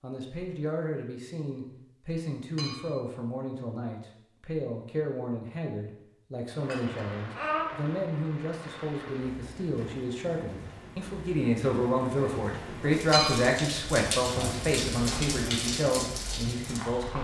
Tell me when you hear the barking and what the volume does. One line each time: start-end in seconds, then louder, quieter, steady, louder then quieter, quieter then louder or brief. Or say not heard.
not heard.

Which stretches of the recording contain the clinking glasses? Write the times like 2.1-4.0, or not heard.
2.5-3.0, 6.5-7.7, 13.1-13.5.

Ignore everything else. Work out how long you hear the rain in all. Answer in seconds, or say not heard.
11 s.